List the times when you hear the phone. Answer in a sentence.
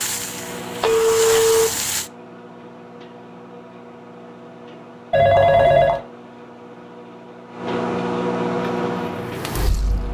You can hear the phone from 0.8 to 1.7 s and from 5.1 to 6.0 s.